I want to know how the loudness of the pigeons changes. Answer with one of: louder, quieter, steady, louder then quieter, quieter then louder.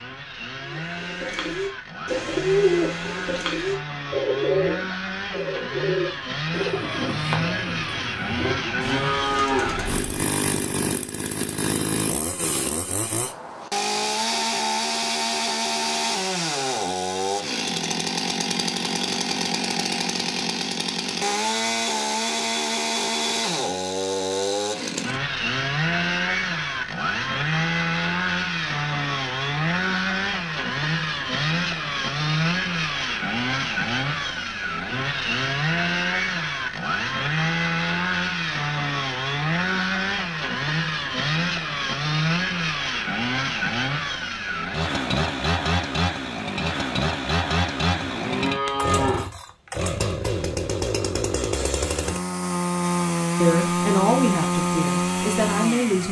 quieter.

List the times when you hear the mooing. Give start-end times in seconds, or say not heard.
8.4-9.8, 48.0-49.3.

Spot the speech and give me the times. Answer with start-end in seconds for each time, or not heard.
53.4-56.0.